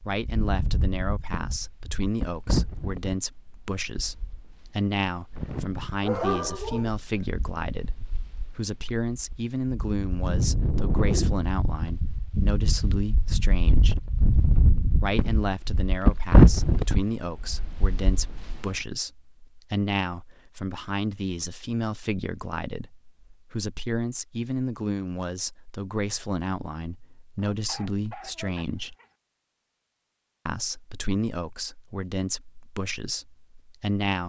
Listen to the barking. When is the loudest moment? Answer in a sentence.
The loudest moment of the barking is at 6 seconds.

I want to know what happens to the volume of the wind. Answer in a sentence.
The loudness of the wind goes down, then up.